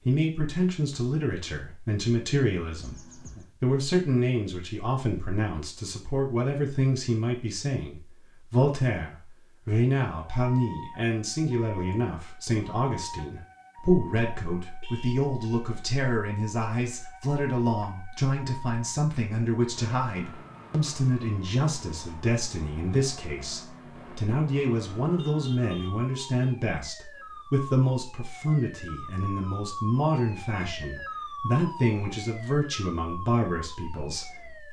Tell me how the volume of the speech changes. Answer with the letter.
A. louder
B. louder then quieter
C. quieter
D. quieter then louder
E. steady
E.